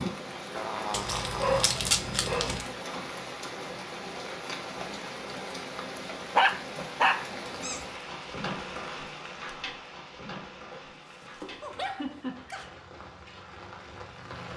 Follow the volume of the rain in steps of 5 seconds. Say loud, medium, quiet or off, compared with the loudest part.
loud, loud, medium.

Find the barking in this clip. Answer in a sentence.
The barking can be heard from 0.9 to 2.6 s, from 6.3 to 7.8 s and from 10.7 to 12.7 s.